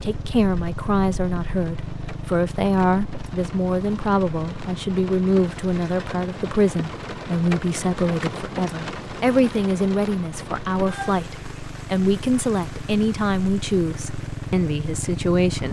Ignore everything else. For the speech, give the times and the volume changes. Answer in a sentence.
The speech can be heard from 0.0 to 15.6 s, at a steady volume.